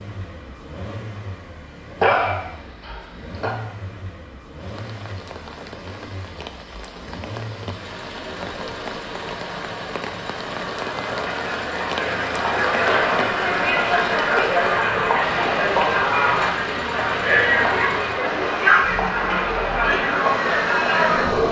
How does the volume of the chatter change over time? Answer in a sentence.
The loudness of the chatter goes up.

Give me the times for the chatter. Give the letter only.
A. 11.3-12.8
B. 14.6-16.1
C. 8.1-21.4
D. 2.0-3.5
C.